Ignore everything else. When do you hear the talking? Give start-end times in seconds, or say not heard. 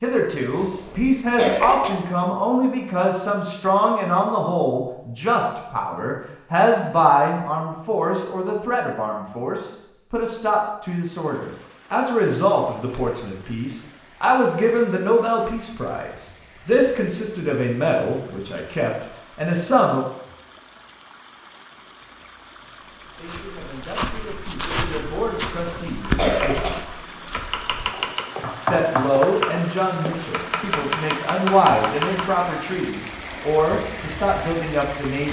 0.0-20.1, 23.1-26.6, 28.6-35.2.